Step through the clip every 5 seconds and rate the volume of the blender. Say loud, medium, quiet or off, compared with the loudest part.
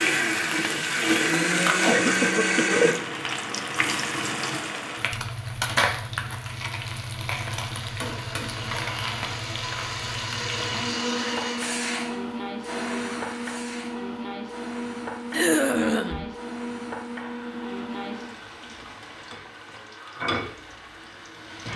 loud, quiet, medium, quiet, quiet.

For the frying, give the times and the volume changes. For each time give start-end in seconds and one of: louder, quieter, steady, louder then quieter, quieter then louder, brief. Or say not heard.
0.0-21.7 quieter.